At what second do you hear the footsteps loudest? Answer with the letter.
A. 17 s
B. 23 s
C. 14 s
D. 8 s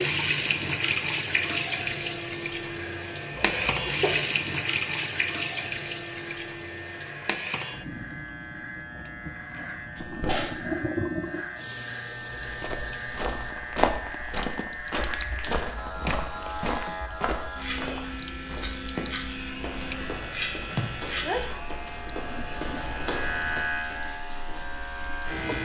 C.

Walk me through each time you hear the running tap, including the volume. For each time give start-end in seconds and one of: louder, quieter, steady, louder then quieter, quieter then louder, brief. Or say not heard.
0.0-25.4 quieter.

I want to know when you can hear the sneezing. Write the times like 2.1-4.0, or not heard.
3.4-4.2, 9.9-10.7, 20.8-21.4.